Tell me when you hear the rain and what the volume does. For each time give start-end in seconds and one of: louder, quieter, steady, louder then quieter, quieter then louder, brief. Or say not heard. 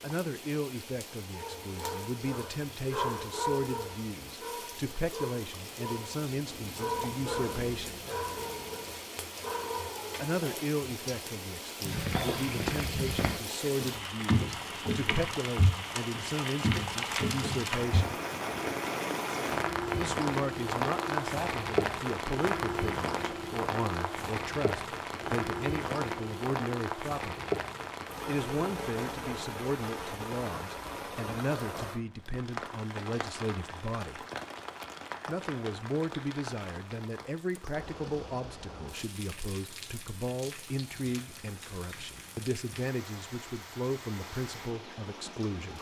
0.0-45.7 louder then quieter.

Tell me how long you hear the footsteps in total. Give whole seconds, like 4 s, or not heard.
6 s.